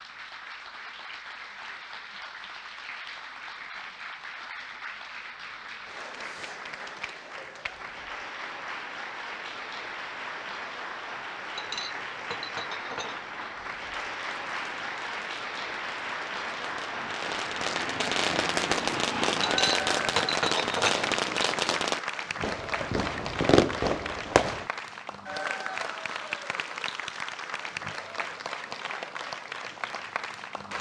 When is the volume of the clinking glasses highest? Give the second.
20 s.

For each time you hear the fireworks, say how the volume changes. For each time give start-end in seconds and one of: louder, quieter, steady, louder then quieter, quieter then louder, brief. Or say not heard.
13.8-24.7 louder.